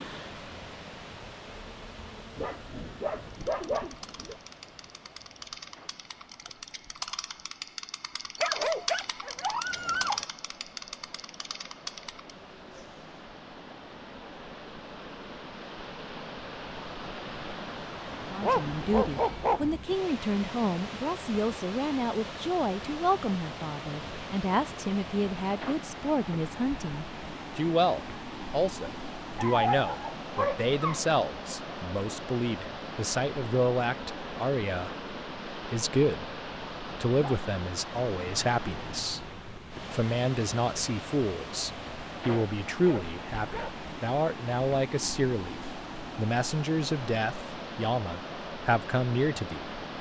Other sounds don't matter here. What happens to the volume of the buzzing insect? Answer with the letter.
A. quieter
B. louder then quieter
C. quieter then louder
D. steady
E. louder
B.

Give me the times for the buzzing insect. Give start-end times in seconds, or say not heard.
0.0-13.3.